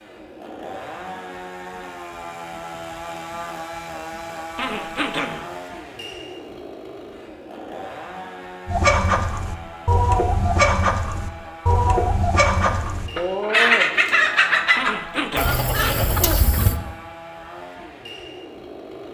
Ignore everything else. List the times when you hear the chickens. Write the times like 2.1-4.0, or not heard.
8.7-16.8.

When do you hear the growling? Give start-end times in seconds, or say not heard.
4.5-5.5, 14.8-16.7.